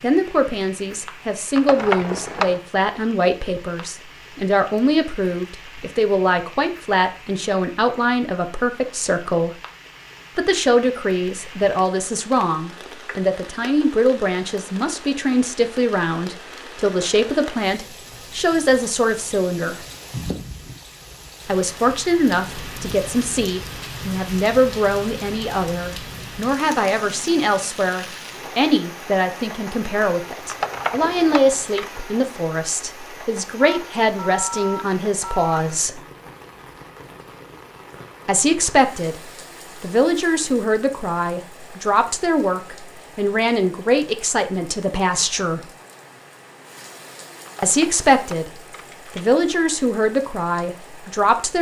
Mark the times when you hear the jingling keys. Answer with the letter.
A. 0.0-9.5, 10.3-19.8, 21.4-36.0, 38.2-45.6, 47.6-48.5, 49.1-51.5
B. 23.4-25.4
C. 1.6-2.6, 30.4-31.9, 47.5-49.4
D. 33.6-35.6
C.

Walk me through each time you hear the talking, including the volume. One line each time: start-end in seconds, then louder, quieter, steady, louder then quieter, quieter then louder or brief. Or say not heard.
0.0-9.5 steady
10.3-19.8 steady
21.4-36.0 steady
38.2-45.6 steady
47.6-48.5 brief
49.1-51.5 brief.